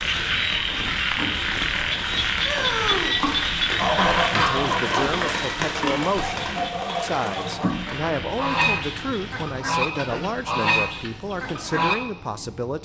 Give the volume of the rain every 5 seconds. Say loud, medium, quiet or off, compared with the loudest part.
loud, loud, quiet.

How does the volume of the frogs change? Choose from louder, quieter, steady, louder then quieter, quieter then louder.
quieter.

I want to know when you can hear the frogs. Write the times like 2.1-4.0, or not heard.
0.0-9.5.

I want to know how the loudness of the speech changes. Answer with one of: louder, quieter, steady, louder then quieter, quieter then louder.
steady.